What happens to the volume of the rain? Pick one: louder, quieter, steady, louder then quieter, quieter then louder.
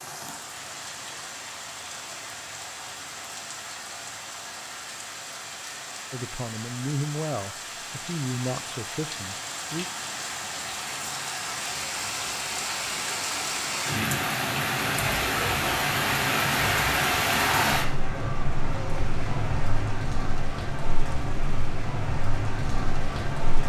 louder then quieter.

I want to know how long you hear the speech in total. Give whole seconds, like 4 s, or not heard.
4 s.